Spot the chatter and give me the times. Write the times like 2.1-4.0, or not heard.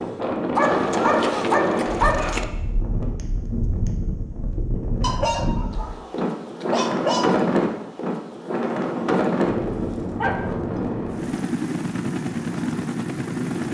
not heard.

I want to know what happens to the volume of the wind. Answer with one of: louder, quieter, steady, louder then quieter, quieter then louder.
quieter then louder.